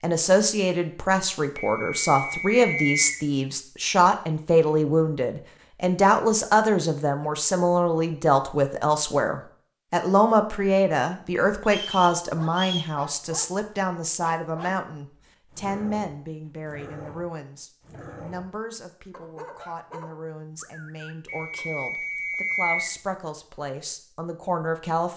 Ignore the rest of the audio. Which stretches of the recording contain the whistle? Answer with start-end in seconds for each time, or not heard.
1.6-3.2, 11.7-12.9, 21.2-22.9.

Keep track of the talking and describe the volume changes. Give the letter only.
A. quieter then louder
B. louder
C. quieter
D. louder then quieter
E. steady
C.